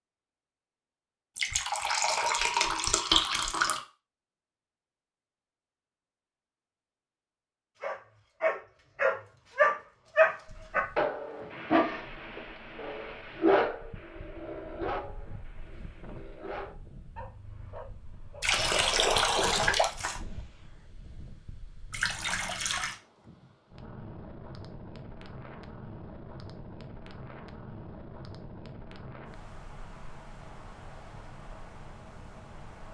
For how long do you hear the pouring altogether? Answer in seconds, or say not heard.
5 s.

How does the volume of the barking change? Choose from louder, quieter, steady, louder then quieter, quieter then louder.
quieter.